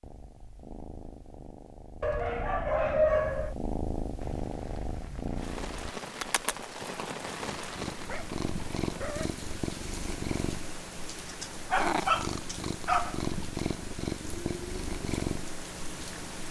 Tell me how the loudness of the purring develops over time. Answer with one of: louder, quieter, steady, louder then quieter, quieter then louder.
louder.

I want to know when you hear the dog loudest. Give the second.
3 s.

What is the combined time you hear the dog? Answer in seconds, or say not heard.
5 s.